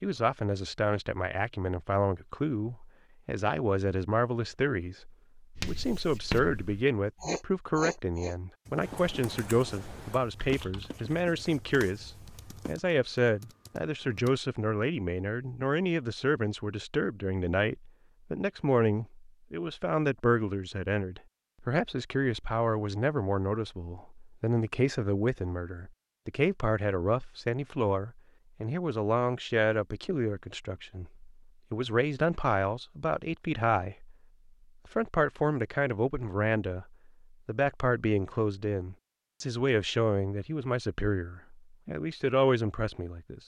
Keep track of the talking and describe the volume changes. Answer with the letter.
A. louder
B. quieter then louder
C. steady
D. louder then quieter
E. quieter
C.